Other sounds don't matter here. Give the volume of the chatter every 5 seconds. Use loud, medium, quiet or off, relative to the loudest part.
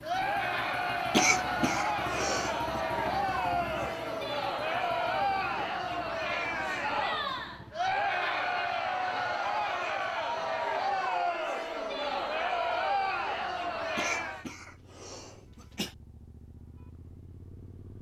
loud, loud, loud, off.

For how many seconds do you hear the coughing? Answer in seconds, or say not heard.
4 s.